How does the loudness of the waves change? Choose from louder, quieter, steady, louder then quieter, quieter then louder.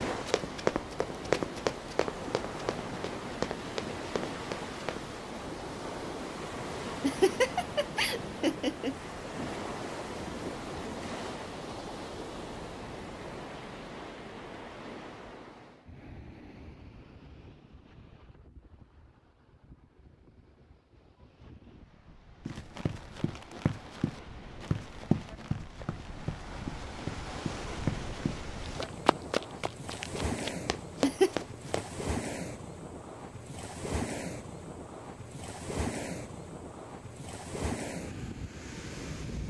quieter then louder.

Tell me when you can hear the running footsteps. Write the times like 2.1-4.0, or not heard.
0.2-5.0, 22.4-32.0.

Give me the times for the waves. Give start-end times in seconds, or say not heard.
0.0-39.4.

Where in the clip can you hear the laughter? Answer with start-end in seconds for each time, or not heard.
7.0-8.9, 30.6-31.3.